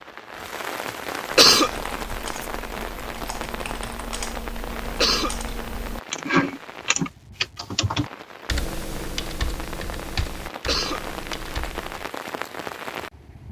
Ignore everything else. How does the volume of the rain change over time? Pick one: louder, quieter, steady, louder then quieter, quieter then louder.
quieter then louder.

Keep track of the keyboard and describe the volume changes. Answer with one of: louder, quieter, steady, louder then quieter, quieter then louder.
louder then quieter.